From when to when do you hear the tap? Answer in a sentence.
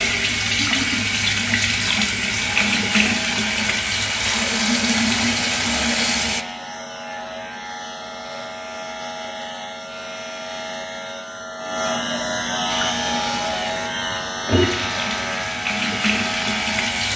You can hear the tap from 0.0 to 6.5 s and from 12.7 to 17.1 s.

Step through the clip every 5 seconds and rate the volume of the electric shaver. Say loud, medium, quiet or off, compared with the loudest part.
medium, medium, loud, loud.